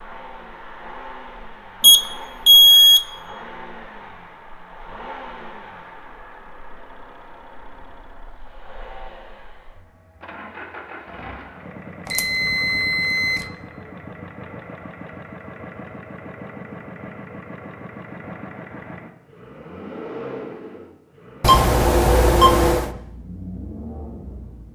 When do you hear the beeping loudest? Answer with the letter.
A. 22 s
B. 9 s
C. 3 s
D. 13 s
C.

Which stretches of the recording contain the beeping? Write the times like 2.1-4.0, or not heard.
1.8-3.0, 12.1-13.4, 21.4-22.9.